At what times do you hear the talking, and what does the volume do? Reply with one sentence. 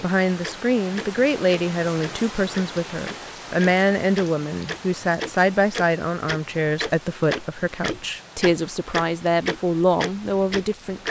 The talking can be heard from 0.0 to 11.0 s, at a steady volume.